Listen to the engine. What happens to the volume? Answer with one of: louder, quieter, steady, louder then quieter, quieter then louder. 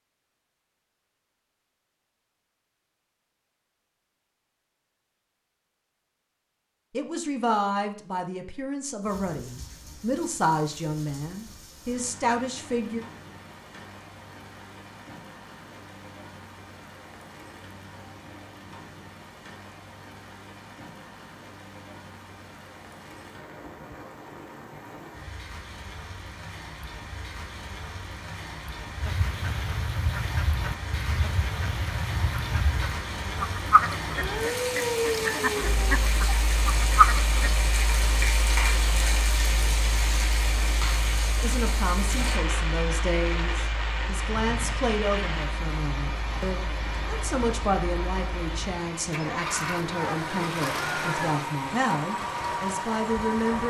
louder.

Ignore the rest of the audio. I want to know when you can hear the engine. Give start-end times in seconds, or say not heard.
35.6-53.6.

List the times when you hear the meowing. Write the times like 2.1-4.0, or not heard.
34.1-36.0.